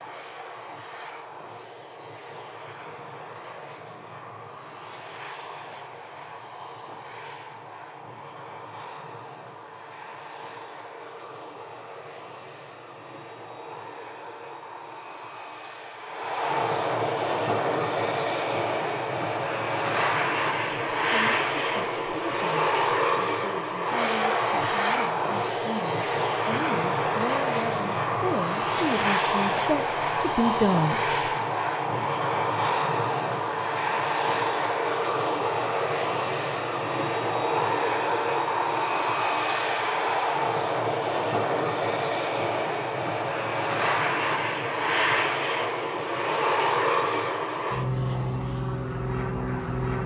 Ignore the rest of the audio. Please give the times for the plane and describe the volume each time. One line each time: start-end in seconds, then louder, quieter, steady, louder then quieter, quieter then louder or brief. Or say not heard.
0.0-50.0 louder.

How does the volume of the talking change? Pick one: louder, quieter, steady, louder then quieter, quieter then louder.
louder.